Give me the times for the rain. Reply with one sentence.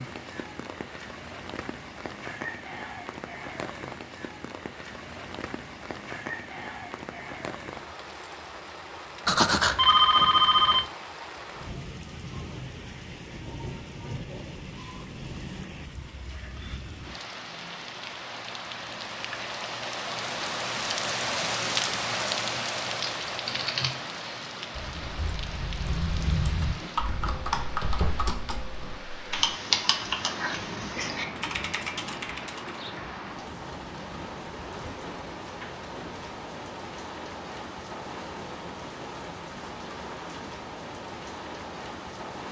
The rain can be heard from 0.0 to 42.4 s.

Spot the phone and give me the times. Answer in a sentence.
You can hear the phone from 9.2 to 10.8 s.